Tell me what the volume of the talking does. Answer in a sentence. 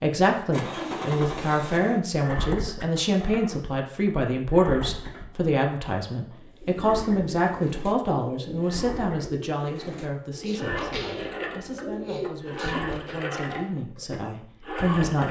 The volume of the talking goes down.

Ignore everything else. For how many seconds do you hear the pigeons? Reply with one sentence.
The pigeons can be heard for 7 seconds in total.